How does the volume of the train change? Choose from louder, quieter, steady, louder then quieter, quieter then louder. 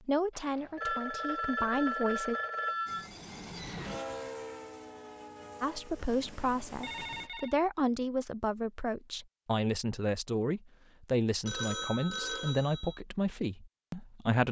quieter.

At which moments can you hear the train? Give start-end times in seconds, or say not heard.
2.9-7.3.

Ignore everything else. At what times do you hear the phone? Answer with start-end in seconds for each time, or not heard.
0.3-3.1, 6.8-7.5, 11.4-13.0.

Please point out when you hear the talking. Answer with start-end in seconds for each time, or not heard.
0.1-2.4, 5.6-14.4.